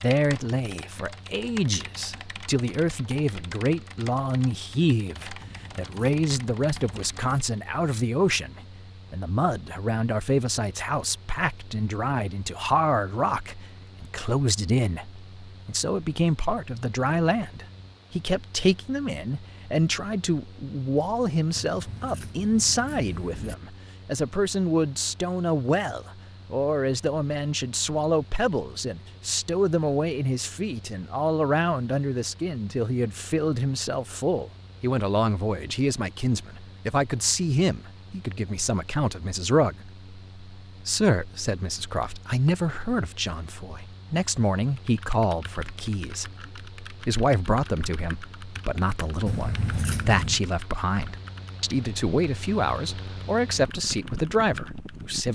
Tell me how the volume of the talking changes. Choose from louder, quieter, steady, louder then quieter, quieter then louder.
steady.